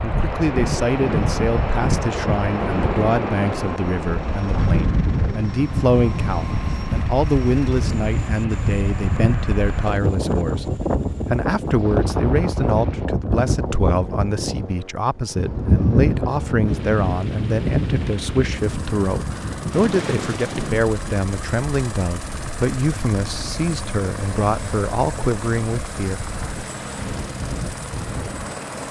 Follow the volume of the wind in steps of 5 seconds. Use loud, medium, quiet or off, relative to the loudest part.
loud, loud, loud, loud, medium, medium.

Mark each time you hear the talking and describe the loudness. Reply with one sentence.
The talking can be heard from 0.0 to 26.2 s, at a steady volume.